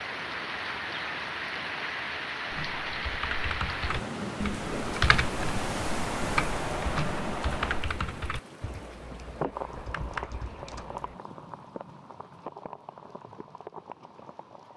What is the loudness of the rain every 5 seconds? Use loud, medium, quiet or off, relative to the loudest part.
loud, loud, medium.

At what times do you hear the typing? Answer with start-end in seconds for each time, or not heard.
2.5-11.2.